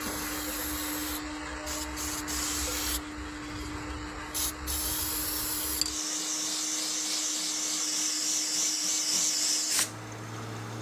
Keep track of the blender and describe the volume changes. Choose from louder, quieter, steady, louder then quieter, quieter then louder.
quieter.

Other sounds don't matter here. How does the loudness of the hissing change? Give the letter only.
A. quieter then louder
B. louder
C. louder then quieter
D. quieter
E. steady
B.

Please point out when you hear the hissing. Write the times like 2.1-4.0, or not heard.
0.0-10.7.